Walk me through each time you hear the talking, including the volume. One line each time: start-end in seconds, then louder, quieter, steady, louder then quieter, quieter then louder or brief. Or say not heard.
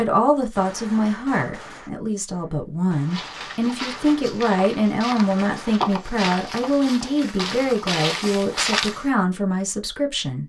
0.0-10.4 steady.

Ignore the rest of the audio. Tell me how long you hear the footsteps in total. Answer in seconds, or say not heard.
6 s.